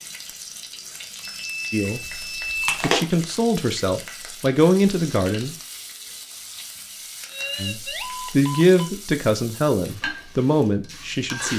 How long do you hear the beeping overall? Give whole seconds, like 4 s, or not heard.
3 s.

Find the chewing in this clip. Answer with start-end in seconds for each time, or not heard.
2.0-3.1.